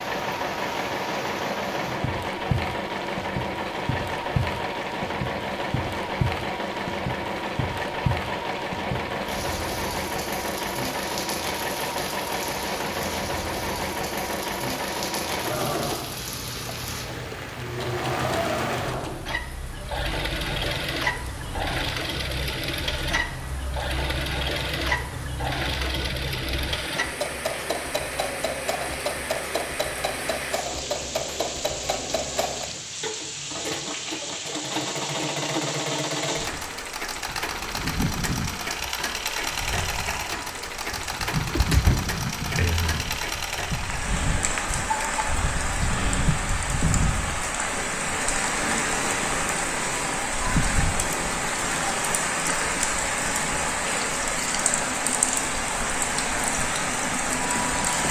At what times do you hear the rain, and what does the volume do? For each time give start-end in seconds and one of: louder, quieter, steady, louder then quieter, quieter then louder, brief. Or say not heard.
0.0-58.0 louder.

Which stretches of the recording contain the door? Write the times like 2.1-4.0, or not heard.
41.5-42.9.